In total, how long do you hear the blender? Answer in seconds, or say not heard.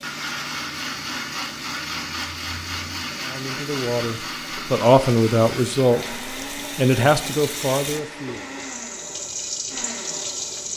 11 s.